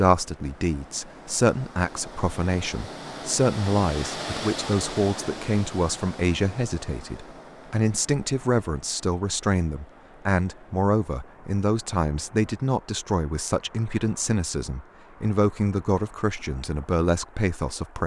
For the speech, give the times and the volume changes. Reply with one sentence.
The speech can be heard from 0.0 to 18.0 s, at a steady volume.